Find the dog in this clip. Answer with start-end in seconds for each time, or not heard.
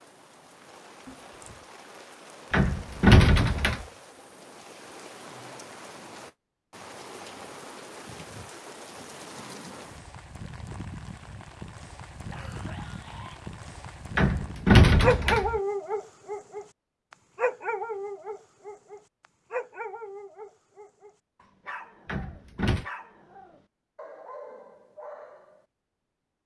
15.0-25.6.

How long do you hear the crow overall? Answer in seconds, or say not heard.
not heard.